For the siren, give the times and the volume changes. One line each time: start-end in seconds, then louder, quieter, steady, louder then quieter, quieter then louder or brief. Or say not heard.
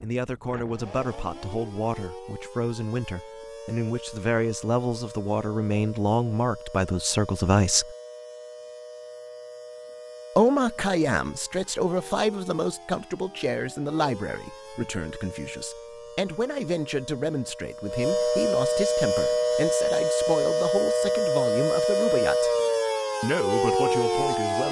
0.0-24.6 louder.